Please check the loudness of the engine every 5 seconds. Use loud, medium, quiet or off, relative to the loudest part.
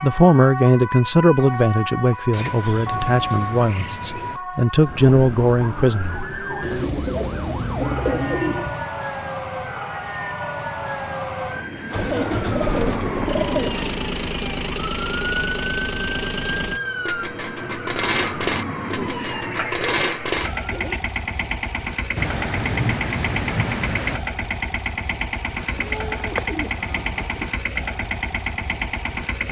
off, off, loud, loud, loud, loud.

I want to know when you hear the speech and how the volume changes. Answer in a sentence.
You can hear the speech from 0.0 to 6.2 s, getting quieter then louder.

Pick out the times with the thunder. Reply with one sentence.
The thunder can be heard from 2.4 to 4.4 s and from 22.1 to 24.2 s.